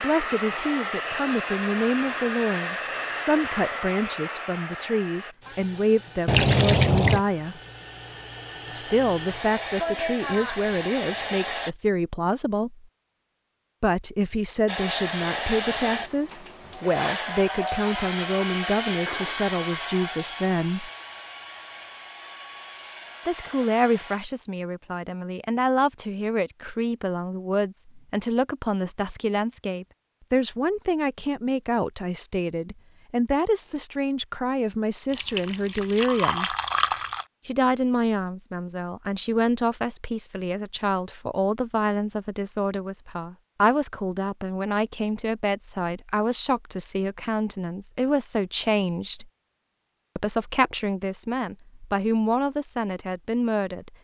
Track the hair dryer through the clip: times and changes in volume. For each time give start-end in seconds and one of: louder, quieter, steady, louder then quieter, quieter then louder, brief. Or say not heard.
0.0-11.8 quieter then louder
14.7-24.2 quieter.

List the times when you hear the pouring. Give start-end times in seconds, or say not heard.
6.2-7.2, 35.1-37.2.